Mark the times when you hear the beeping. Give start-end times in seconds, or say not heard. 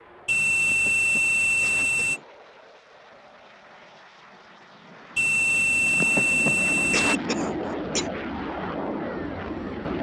0.2-2.2, 5.2-7.2.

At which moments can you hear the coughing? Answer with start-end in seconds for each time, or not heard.
0.6-2.2, 5.8-8.1.